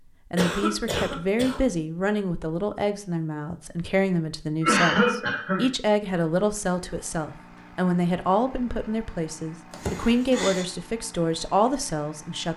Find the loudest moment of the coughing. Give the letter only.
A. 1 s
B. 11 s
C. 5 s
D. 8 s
C.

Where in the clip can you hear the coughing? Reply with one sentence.
The coughing can be heard from 0.3 to 1.6 s, from 4.6 to 5.7 s and from 9.7 to 10.7 s.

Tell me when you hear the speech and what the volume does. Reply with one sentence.
The speech can be heard from 0.3 to 12.5 s, at a steady volume.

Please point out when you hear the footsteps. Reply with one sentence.
The footsteps can't be heard in this clip.